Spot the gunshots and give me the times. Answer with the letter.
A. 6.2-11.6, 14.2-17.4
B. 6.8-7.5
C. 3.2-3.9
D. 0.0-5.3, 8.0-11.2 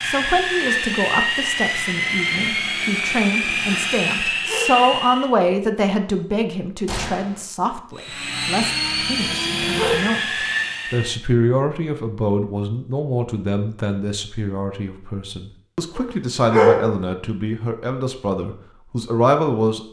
B.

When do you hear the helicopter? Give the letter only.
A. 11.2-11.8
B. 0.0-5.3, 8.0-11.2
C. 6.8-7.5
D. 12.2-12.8
B.